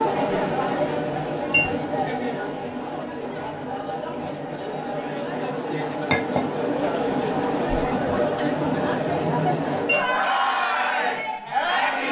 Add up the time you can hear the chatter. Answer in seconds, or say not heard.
12 s.